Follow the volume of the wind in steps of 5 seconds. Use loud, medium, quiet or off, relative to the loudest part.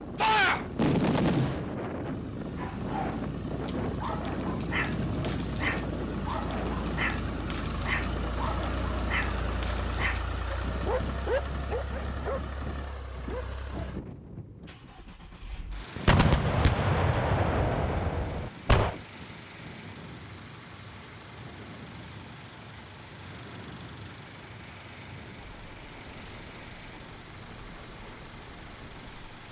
loud, loud, medium, quiet, quiet, quiet.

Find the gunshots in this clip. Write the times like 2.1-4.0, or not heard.
0.2-1.8, 16.1-18.9.